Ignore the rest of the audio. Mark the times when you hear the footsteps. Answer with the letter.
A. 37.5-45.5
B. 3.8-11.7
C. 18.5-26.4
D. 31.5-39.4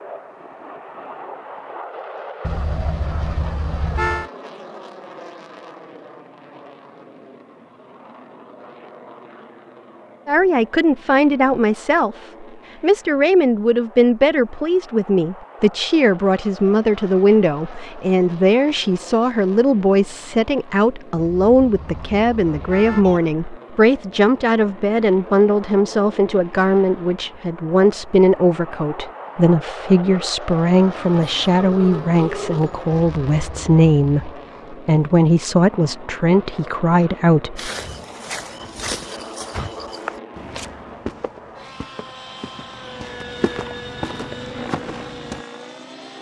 A.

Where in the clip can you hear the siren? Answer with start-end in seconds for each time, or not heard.
not heard.